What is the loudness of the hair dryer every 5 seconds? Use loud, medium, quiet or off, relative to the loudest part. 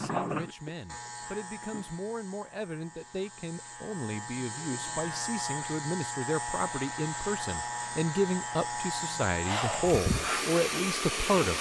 off, medium, loud.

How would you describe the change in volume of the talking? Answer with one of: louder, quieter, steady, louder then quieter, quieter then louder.
louder.